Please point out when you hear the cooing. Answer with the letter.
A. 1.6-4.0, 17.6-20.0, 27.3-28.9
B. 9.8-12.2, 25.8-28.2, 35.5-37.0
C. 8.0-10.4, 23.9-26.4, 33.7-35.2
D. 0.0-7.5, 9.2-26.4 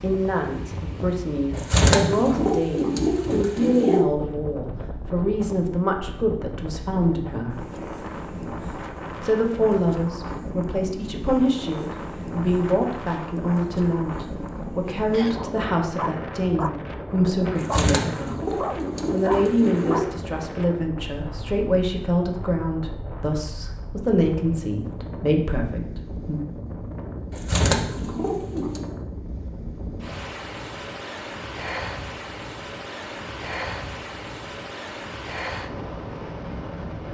A.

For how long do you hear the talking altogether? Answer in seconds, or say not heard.
25 s.